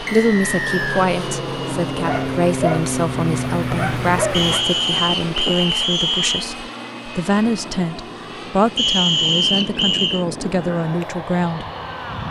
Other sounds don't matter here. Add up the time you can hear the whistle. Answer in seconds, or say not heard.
5 s.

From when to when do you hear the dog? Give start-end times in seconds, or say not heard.
2.0-4.7.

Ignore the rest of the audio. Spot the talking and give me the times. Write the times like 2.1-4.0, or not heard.
0.0-11.7.